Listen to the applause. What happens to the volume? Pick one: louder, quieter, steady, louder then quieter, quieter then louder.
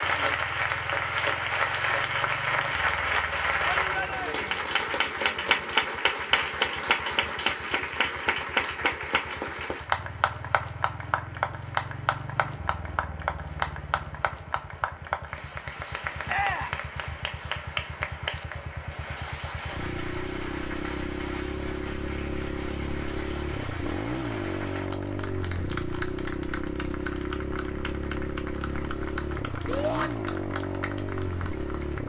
quieter.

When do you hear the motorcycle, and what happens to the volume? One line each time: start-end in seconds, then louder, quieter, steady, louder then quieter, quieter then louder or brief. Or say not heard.
0.0-32.0 louder.